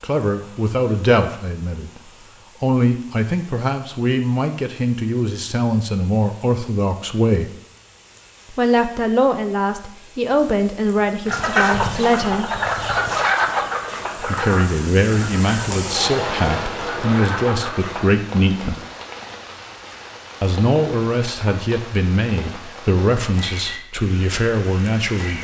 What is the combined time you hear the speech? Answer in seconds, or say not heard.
21 s.